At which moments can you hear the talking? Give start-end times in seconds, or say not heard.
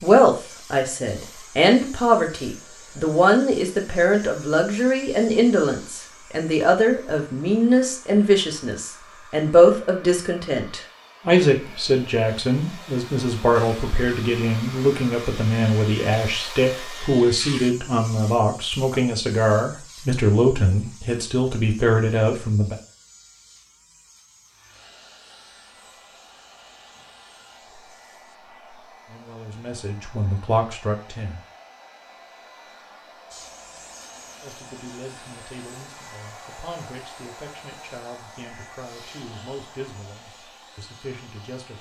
0.0-22.8, 29.1-31.4, 34.4-41.7.